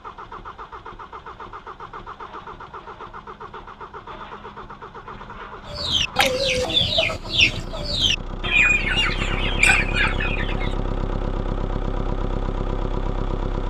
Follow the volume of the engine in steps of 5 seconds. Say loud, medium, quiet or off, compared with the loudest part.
medium, medium, loud.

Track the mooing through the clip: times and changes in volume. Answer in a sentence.
You can't hear the mooing here.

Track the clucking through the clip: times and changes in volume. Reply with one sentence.
You can hear the clucking from 5.7 to 10.8 s, at a steady volume.